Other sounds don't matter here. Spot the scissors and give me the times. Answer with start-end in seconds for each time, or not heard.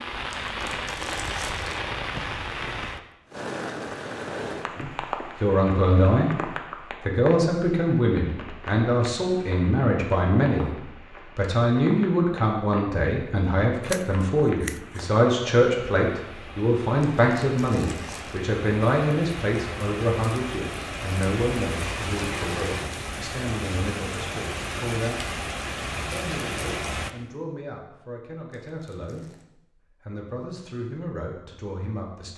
13.8-15.1.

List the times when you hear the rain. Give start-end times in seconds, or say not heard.
0.0-27.1.